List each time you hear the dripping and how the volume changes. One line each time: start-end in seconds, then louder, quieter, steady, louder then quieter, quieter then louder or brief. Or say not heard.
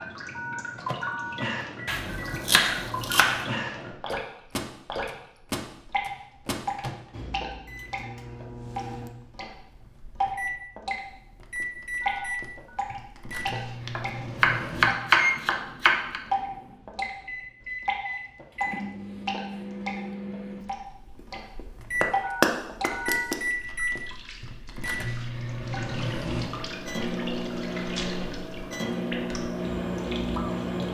0.0-11.0 steady
12.0-22.9 steady
23.6-30.8 louder.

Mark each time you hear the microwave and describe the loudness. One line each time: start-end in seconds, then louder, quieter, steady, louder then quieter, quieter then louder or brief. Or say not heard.
0.0-30.8 louder.